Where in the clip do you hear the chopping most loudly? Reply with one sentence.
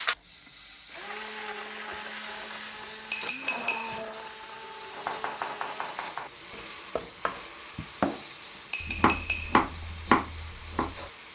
The volume of the chopping peaks at 10 seconds.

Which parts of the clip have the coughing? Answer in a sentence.
The coughing can't be heard in this clip.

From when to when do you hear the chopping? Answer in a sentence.
You can hear the chopping from 4.9 to 11.1 s.